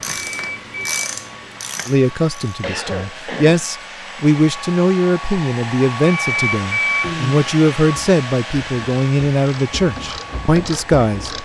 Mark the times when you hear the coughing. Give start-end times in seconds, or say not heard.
2.6-3.6, 7.0-7.5.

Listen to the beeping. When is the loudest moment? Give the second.
7 s.